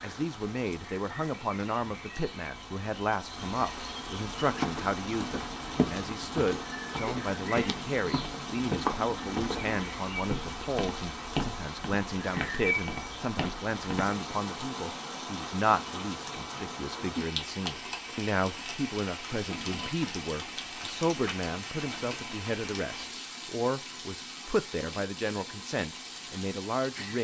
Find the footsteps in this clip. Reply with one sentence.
You can hear the footsteps from 4.2 to 14.1 s.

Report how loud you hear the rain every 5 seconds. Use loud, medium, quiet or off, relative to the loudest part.
medium, loud, loud, loud, loud, medium.